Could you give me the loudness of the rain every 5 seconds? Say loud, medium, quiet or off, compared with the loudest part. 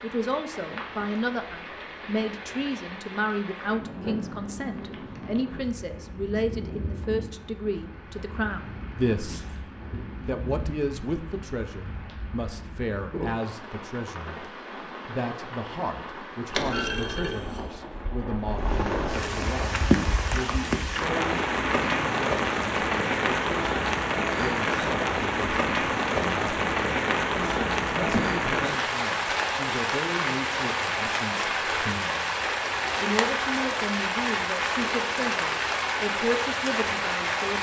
quiet, quiet, quiet, medium, loud, loud, loud, loud.